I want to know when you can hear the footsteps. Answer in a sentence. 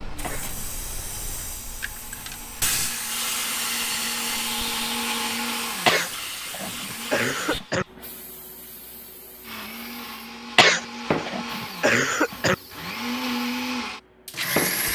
You can't hear the footsteps here.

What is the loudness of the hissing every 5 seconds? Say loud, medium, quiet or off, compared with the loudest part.
loud, medium, loud.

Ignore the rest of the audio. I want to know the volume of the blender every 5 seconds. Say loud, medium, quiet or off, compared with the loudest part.
medium, loud, loud.